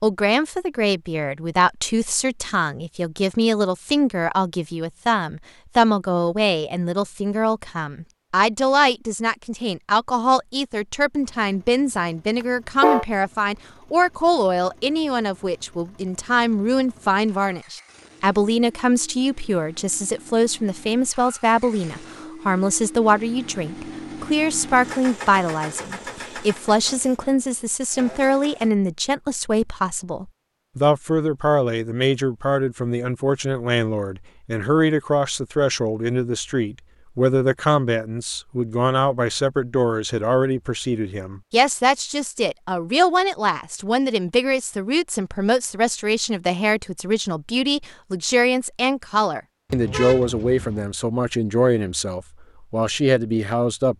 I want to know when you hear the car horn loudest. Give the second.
13 s.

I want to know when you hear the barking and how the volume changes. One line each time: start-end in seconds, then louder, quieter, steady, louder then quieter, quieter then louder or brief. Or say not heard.
not heard.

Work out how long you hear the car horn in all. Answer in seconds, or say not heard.
2 s.